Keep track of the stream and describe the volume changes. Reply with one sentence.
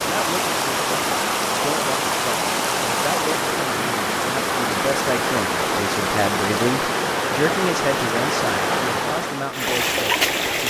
The loudness of the stream stays about the same.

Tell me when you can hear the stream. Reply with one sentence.
The stream can be heard from 0.0 to 10.6 s.